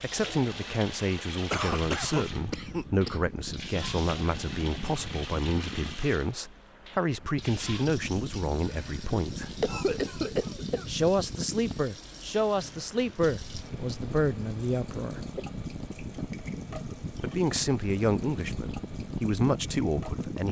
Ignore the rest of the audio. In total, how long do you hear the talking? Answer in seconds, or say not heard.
17 s.